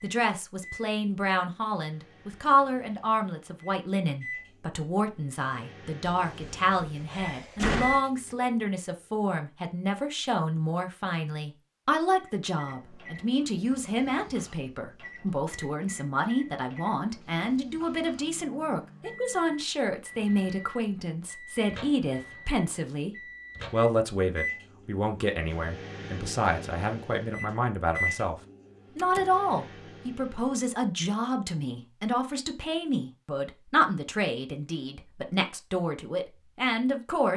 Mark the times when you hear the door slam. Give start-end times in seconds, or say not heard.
6.0-8.0, 28.9-29.4.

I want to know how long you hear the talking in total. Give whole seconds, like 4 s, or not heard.
37 s.